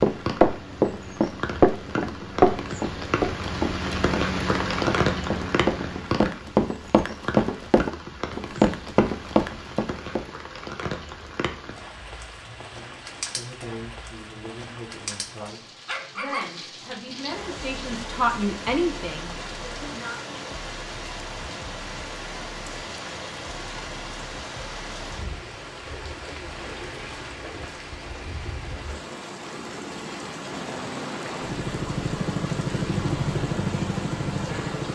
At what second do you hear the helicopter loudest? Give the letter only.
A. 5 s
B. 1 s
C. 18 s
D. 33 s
D.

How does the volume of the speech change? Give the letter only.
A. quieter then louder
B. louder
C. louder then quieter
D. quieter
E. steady
B.